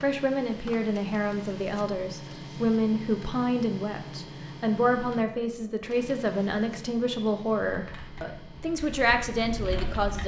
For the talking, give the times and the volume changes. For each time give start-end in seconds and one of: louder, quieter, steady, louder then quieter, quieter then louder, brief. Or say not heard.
0.0-10.2 steady.